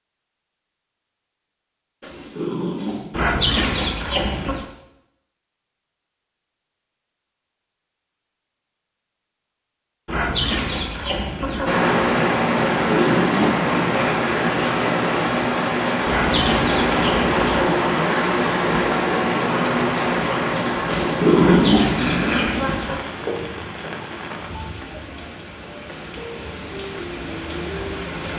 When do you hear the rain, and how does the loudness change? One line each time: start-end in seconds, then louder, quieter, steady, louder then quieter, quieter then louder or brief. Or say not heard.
11.7-28.3 quieter.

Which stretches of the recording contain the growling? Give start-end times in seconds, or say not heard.
2.0-3.1, 12.8-14.3, 20.9-22.6.